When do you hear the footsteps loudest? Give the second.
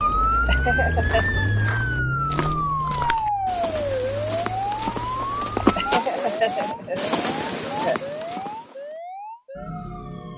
6 s.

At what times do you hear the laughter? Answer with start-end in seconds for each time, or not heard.
0.5-1.2, 5.8-8.0.